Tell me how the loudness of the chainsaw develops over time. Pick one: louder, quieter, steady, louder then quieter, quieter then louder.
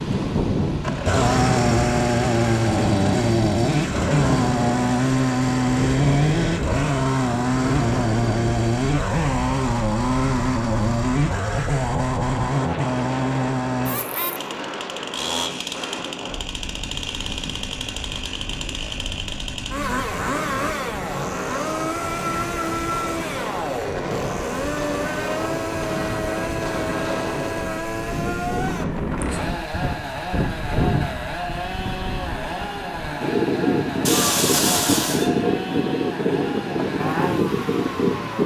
quieter.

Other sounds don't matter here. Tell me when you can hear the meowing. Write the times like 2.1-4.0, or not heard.
34.0-35.3.